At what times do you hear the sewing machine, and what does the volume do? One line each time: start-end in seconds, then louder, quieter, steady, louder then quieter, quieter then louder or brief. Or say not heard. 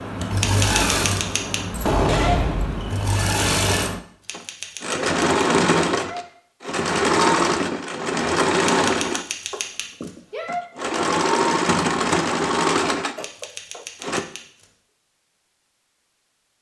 0.0-14.2 steady.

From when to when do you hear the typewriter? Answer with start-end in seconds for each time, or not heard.
0.3-2.4, 4.2-6.2, 8.7-10.6, 13.2-14.7.